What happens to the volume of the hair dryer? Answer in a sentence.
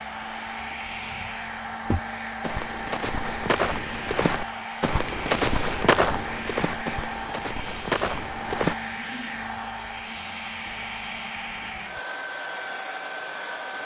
The loudness of the hair dryer stays about the same.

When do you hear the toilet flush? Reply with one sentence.
The toilet flush can't be heard in this clip.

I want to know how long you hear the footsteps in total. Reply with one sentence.
You can hear the footsteps for 7 seconds altogether.